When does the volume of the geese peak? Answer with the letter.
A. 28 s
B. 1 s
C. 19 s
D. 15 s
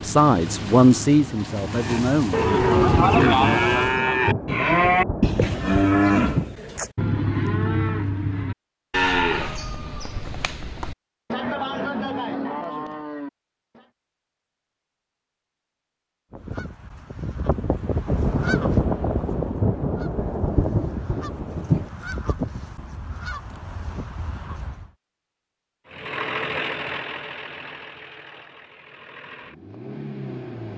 C.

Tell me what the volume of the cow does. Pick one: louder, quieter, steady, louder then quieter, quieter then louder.
quieter.